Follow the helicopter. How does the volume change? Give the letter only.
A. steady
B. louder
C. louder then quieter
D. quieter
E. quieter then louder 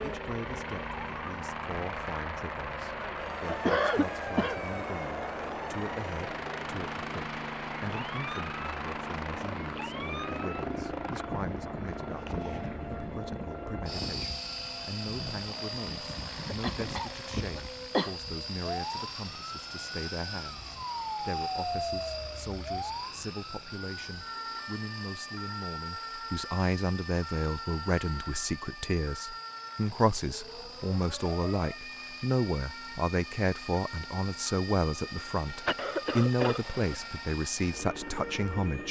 D.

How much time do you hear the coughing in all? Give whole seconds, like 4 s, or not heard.
4 s.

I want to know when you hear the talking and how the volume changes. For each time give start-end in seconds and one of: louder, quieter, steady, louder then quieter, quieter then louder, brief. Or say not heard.
0.0-38.8 louder.